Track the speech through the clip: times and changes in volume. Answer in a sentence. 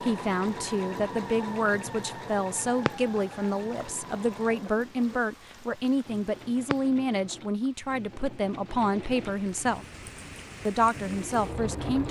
You can hear the speech from 0.0 to 9.8 s, at a steady volume; and briefly from 10.7 to 12.0 s.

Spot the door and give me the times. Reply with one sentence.
The door can't be heard in this clip.